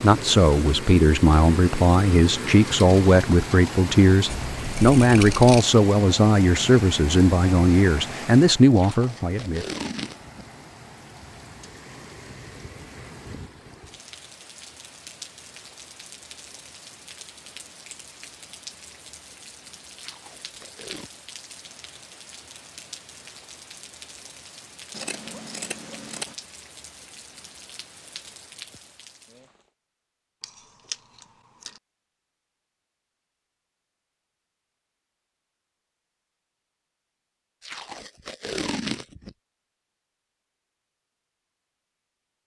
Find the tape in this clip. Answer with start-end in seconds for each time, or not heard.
8.7-10.4, 19.9-21.1, 37.6-39.4.